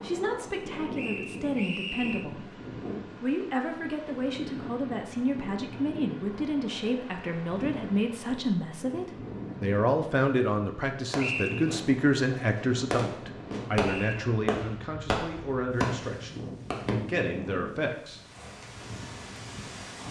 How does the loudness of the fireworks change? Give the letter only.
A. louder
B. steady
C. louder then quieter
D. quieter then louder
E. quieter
A.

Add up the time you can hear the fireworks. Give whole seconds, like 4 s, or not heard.
6 s.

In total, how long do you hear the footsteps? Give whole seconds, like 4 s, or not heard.
not heard.